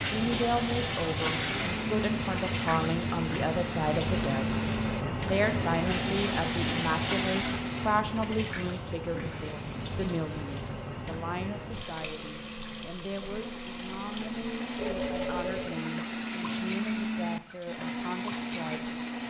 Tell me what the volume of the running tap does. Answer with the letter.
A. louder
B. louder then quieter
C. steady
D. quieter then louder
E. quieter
E.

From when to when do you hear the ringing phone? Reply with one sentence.
The ringing phone can be heard from 14.8 to 15.8 s.